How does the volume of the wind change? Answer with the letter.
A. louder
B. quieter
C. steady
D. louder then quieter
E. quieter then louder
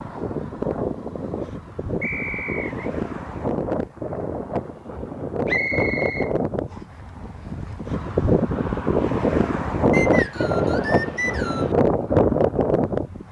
A.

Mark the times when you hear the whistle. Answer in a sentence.
You can hear the whistle from 2.0 to 2.9 s, from 5.5 to 6.8 s and from 9.9 to 11.7 s.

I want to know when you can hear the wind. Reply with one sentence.
You can hear the wind from 0.0 to 13.2 s.